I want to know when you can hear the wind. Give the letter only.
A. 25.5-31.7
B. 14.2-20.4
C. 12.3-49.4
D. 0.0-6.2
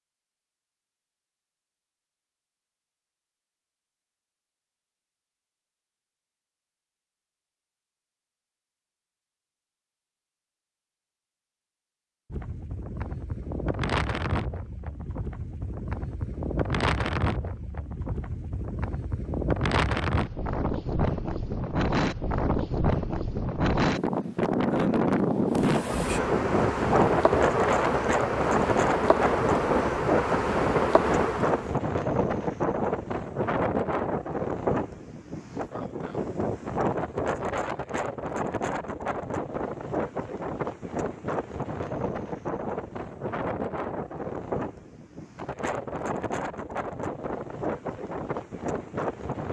C.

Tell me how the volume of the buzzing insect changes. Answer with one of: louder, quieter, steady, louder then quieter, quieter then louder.
steady.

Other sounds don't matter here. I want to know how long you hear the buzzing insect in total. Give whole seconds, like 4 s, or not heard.
6 s.